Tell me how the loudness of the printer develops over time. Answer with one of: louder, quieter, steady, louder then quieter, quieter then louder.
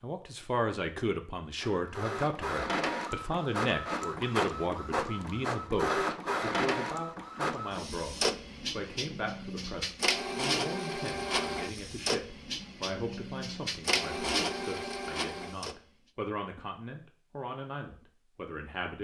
steady.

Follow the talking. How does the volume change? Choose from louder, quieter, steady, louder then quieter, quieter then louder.
quieter.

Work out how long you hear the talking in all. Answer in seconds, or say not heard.
19 s.